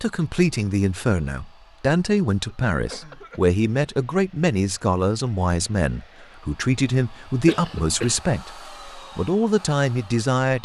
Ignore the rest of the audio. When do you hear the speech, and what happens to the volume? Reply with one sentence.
You can hear the speech from 0.0 to 10.6 s, at a steady volume.